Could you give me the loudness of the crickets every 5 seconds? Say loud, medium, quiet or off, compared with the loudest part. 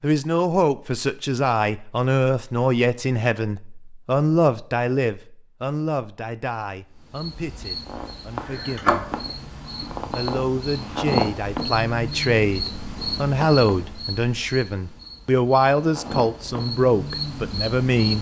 off, loud, loud, loud.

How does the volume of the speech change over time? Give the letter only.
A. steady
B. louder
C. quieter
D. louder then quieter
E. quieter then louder
E.